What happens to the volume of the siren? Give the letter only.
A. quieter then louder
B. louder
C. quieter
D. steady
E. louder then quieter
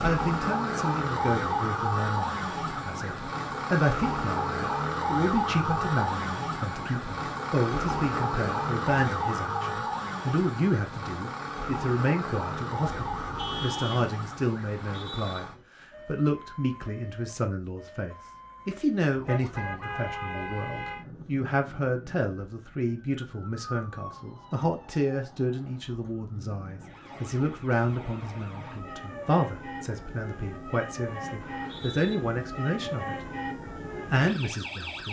A.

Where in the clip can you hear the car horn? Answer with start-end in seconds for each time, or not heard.
12.9-14.1, 19.2-21.1.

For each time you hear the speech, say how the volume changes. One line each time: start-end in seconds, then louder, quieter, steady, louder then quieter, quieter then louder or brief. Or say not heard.
0.0-33.1 steady
34.1-35.0 brief.